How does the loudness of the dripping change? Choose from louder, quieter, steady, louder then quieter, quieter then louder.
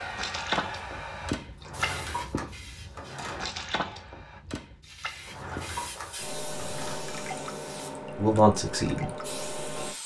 quieter.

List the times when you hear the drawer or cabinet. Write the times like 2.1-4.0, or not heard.
1.6-3.5, 5.2-7.0.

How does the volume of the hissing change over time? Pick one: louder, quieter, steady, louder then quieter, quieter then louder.
quieter then louder.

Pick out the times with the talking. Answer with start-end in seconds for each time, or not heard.
8.2-9.1.